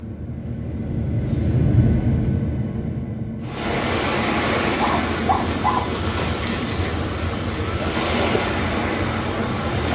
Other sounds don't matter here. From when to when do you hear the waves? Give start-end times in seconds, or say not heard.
3.4-9.9.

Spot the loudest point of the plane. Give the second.
2 s.